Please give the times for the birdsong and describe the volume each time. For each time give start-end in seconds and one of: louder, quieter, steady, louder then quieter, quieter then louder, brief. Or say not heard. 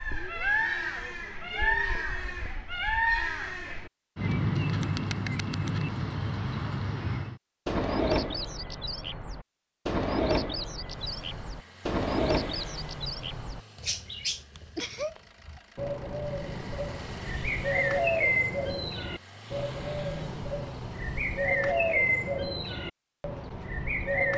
0.0-24.3 steady.